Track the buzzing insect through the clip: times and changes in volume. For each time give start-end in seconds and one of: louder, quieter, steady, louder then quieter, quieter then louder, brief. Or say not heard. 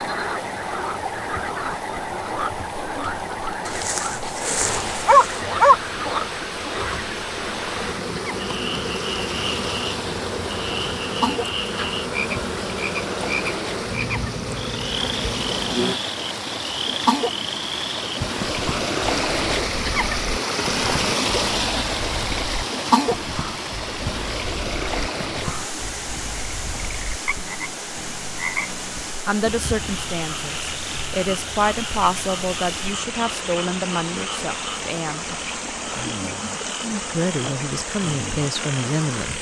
0.0-15.9 louder.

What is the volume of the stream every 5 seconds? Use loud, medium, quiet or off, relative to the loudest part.
medium, medium, medium, loud, loud, medium, medium, medium.